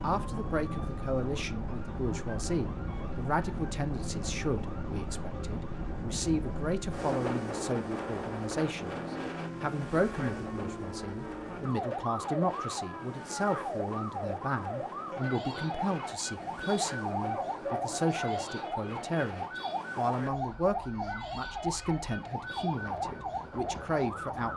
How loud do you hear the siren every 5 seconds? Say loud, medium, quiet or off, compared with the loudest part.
medium, medium, loud, loud, loud.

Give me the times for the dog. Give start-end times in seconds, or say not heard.
17.1-18.6.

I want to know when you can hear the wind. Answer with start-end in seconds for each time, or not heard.
0.0-24.5.